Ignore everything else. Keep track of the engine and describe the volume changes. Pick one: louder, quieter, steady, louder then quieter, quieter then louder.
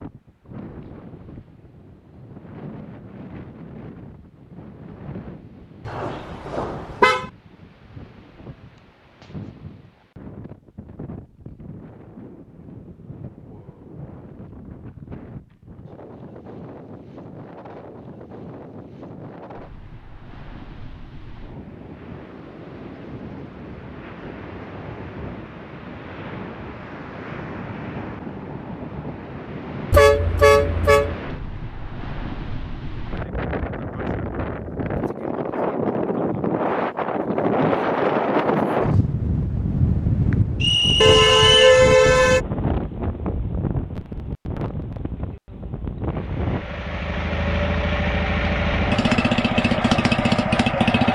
louder.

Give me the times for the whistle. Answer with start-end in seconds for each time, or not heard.
40.6-41.8.